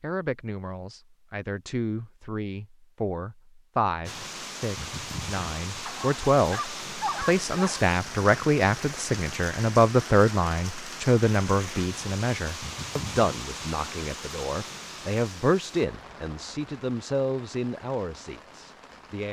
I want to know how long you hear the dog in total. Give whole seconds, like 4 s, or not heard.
2 s.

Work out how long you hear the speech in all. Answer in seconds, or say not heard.
19 s.